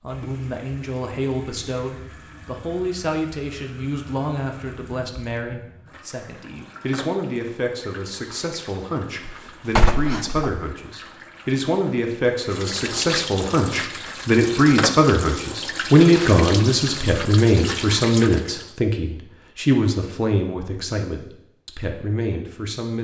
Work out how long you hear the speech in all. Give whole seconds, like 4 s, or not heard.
23 s.